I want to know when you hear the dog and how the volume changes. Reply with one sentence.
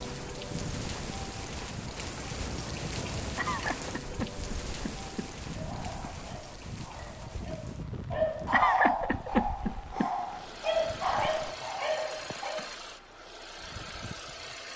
The dog can be heard from 5.5 to 12.7 s, getting louder.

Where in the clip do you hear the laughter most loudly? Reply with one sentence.
The volume of the laughter peaks at 9 seconds.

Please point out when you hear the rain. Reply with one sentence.
You can hear the rain from 0.0 to 11.6 s.